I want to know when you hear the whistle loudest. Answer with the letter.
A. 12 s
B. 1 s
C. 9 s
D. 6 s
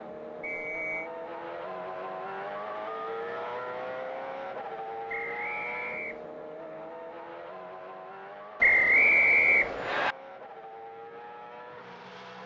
C.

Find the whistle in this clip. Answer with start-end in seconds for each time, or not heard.
0.4-1.1, 5.0-6.3, 8.6-10.2.